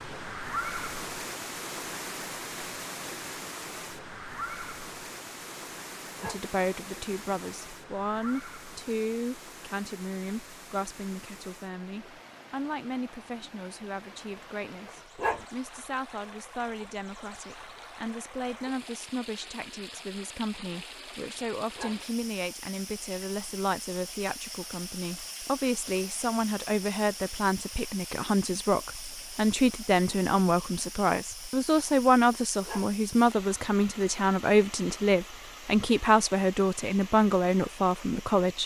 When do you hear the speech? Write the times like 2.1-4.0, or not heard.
6.2-38.6.